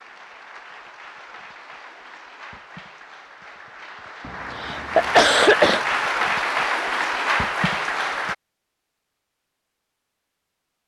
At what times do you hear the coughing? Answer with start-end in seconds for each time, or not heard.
4.2-5.8.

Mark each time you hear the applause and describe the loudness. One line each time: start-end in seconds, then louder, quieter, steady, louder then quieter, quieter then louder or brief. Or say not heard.
0.0-8.3 louder.